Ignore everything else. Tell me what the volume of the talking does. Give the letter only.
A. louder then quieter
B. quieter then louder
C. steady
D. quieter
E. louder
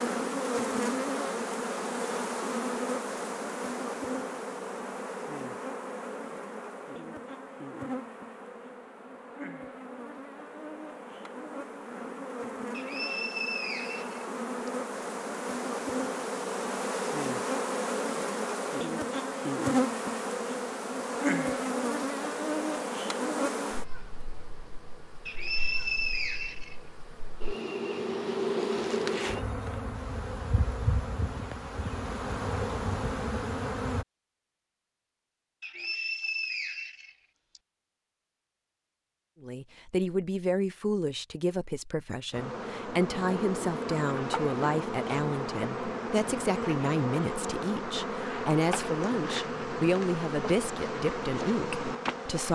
C.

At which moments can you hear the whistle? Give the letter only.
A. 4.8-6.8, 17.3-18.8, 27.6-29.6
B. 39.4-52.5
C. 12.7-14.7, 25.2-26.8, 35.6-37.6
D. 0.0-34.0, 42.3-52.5
C.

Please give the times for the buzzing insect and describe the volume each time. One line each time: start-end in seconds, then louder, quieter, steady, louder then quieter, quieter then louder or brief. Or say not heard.
0.0-34.0 quieter then louder
42.3-52.5 steady.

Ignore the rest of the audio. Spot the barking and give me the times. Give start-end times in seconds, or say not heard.
not heard.